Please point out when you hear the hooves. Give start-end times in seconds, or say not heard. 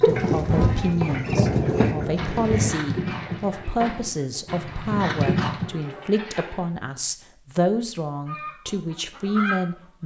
0.0-5.7.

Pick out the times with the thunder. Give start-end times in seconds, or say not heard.
0.3-2.8.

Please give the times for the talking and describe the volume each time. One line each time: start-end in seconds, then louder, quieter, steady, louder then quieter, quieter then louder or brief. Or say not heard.
0.0-10.0 steady.